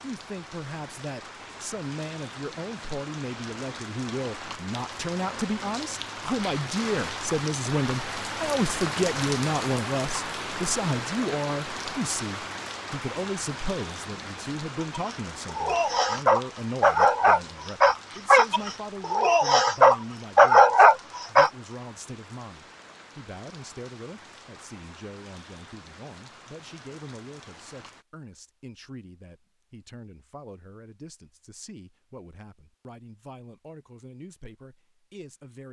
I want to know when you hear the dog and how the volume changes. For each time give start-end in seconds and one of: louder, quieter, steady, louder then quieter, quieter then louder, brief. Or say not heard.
14.9-21.5 louder.